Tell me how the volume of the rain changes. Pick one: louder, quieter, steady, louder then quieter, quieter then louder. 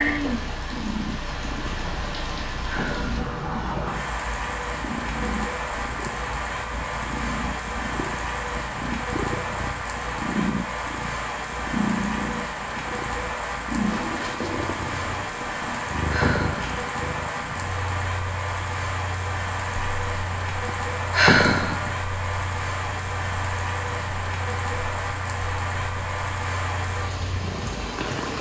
steady.